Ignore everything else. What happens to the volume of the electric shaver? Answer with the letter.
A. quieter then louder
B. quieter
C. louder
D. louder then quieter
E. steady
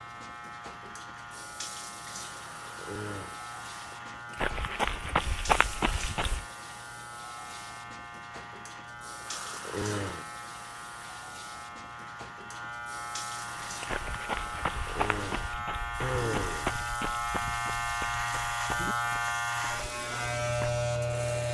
C.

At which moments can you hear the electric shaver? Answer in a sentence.
You can hear the electric shaver from 0.0 to 21.4 s.